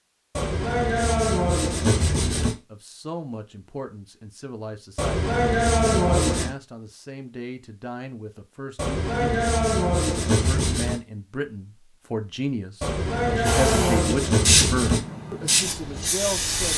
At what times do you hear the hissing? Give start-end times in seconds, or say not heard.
13.4-16.7.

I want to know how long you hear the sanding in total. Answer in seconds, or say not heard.
8 s.